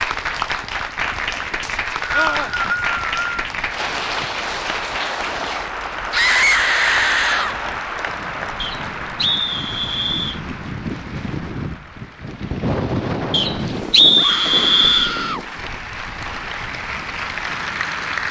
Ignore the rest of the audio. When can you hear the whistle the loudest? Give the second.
14 s.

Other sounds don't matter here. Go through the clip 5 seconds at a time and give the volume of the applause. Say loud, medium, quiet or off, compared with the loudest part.
loud, loud, quiet, loud.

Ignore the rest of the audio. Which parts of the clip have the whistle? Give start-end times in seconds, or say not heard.
1.6-3.2, 8.6-10.4, 13.3-15.2.